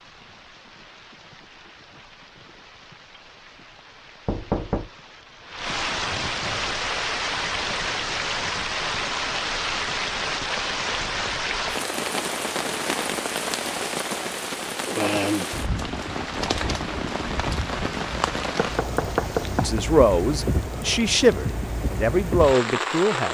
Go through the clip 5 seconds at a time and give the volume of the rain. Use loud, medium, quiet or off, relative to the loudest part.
quiet, loud, loud, loud, loud.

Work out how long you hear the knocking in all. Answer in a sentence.
The knocking can be heard for 2 seconds in total.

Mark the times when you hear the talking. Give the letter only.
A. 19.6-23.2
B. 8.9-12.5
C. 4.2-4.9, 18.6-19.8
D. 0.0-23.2
A.